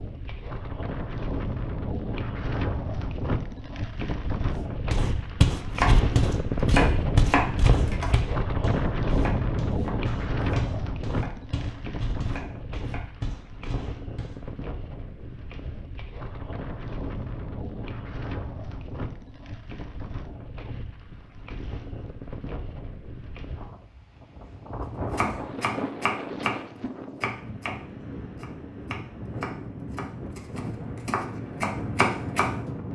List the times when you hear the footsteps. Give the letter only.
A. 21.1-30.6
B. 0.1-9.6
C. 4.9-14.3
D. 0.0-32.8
C.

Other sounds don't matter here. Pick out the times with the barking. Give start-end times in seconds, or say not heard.
not heard.